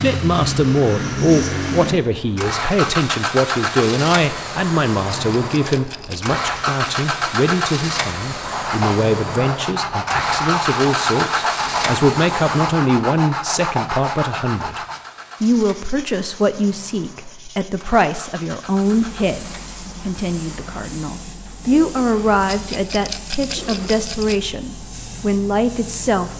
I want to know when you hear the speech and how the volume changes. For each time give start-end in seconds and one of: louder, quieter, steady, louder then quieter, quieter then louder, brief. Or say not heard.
0.0-26.3 steady.